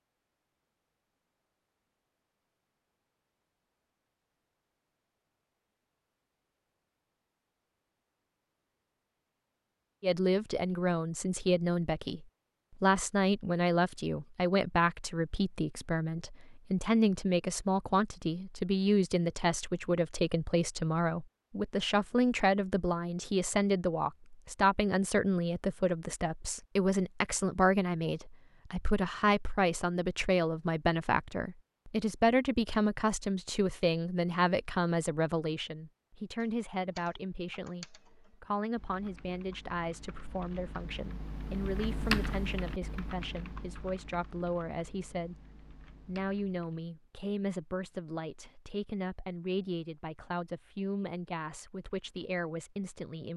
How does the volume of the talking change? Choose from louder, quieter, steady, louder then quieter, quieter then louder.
quieter.